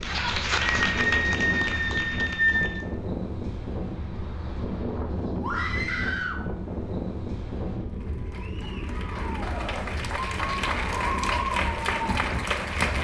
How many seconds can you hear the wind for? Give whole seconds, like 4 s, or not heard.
13 s.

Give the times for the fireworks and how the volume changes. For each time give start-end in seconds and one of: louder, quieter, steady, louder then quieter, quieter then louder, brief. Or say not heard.
not heard.